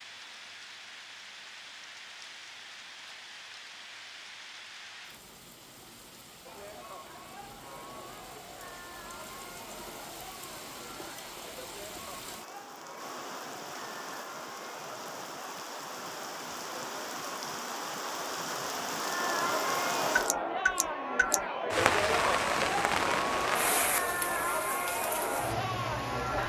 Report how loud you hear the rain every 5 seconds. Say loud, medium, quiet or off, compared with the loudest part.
quiet, quiet, quiet, medium, loud, medium.